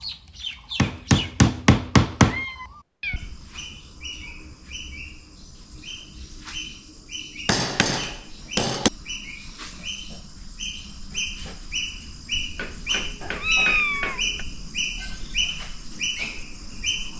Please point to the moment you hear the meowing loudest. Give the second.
14 s.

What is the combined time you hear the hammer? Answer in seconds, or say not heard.
5 s.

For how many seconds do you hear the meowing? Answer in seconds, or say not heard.
2 s.